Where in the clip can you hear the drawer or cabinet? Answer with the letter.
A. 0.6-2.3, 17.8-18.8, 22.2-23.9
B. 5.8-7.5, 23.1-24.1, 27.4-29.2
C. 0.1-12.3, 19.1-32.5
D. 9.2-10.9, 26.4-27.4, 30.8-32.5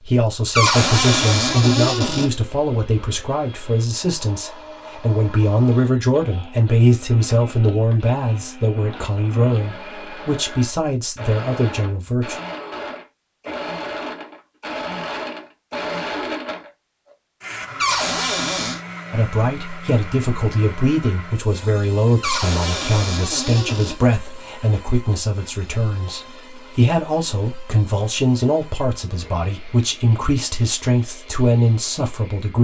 A.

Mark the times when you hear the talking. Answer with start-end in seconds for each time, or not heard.
0.1-12.3, 19.1-32.5.